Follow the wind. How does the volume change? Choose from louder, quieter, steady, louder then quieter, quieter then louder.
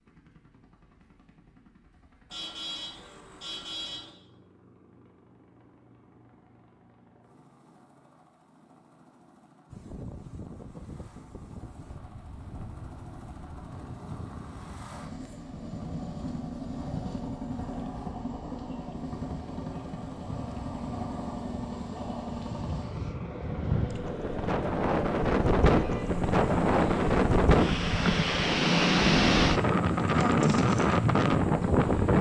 louder.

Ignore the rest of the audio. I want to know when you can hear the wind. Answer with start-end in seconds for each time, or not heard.
9.7-32.1.